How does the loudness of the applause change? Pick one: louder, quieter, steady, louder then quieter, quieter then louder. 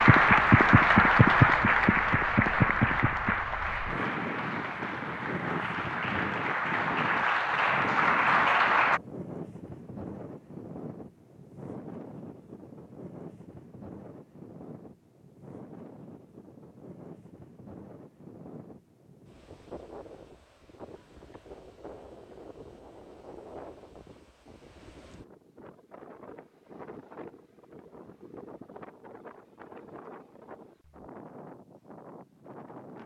quieter then louder.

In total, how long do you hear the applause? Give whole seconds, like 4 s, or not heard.
9 s.